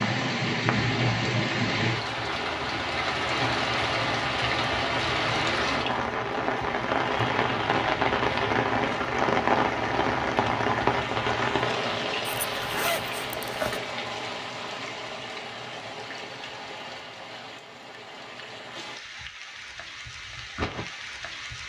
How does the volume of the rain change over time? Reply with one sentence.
The loudness of the rain goes down.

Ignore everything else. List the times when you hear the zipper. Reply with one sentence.
You can hear the zipper from 12.2 to 13.8 s.